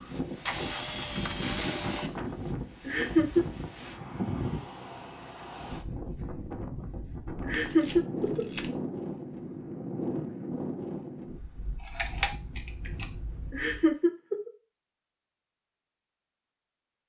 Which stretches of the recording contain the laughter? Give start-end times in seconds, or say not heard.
2.9-3.5, 7.4-8.4, 13.5-14.5.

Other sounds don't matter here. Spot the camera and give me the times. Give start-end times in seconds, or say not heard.
0.5-2.1, 7.5-8.7, 11.8-13.1.